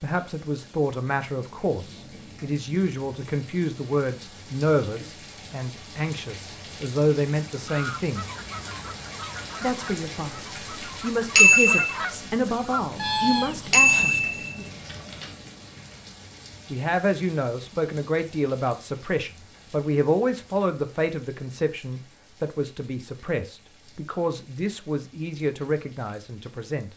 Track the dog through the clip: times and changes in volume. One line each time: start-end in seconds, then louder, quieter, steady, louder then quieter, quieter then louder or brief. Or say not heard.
not heard.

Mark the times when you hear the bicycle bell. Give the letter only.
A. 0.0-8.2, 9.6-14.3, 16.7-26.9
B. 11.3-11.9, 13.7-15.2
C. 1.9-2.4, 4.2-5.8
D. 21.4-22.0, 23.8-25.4
B.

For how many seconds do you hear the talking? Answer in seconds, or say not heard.
23 s.